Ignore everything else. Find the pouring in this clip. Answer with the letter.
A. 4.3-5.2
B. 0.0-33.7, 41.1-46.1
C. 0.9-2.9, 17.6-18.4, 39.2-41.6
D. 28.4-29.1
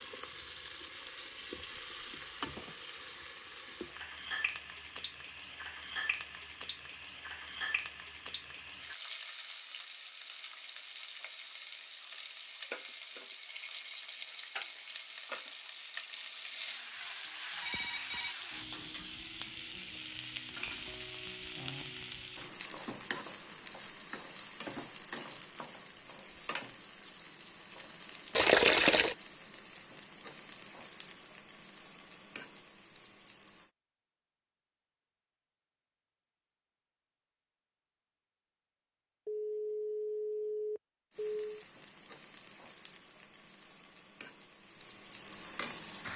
D.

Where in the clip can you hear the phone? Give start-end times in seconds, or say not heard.
0.9-2.9, 17.6-18.4, 39.2-41.6.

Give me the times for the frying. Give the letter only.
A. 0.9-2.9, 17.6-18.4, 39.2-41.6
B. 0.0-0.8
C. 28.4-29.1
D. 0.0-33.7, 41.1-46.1
D.